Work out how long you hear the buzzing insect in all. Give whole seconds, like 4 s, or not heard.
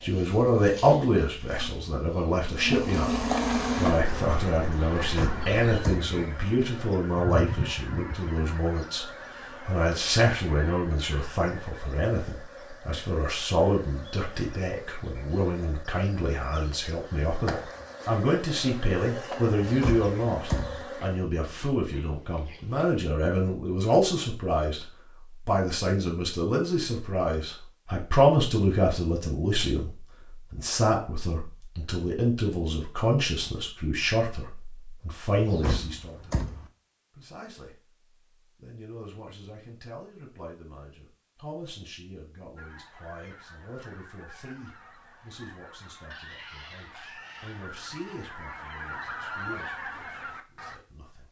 21 s.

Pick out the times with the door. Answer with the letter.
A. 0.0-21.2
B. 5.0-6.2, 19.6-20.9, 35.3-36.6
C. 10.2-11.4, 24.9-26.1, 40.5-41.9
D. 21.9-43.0
B.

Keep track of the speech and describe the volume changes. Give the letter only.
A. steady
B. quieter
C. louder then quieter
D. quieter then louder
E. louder
B.